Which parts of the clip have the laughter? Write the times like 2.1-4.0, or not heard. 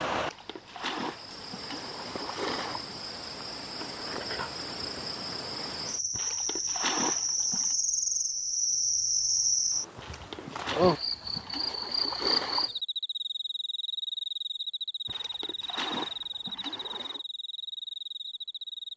not heard.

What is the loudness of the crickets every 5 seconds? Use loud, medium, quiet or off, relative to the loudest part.
medium, loud, loud, medium.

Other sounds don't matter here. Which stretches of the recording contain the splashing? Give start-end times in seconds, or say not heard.
0.1-2.9, 6.1-7.8, 9.9-12.7, 15.1-17.2.